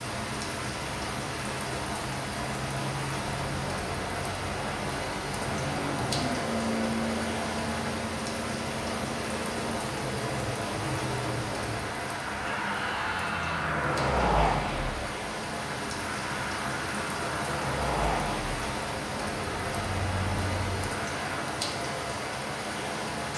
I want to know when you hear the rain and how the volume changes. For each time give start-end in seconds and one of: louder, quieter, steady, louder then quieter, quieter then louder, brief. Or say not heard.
0.0-23.3 steady.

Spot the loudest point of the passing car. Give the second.
14 s.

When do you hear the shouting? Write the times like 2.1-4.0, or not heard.
12.4-13.8.